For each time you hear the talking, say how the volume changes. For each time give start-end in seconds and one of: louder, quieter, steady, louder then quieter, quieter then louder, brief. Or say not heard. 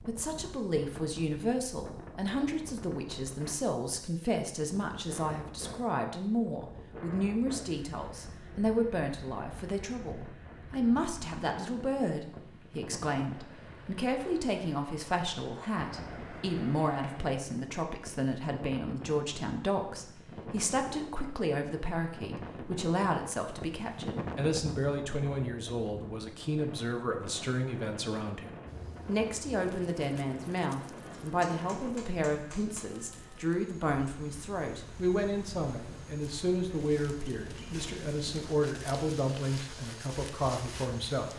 0.0-41.3 steady.